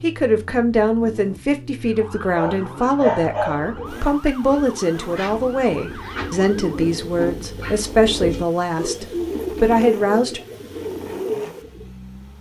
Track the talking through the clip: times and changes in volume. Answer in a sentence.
The talking can be heard from 0.0 to 10.4 s, at a steady volume.